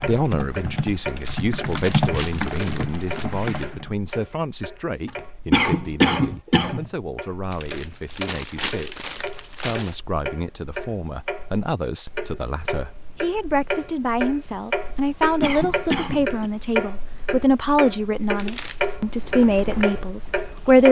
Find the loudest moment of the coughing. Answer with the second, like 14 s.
6 s.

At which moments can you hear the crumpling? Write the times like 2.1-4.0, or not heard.
1.1-3.2, 7.5-9.9, 18.4-18.9.